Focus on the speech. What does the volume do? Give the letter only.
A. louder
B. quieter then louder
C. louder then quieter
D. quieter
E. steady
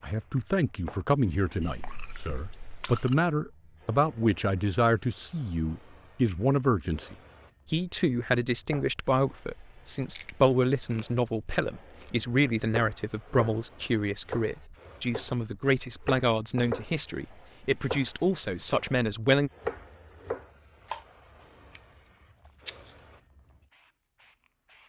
E.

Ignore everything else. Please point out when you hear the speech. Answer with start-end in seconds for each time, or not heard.
0.0-19.5.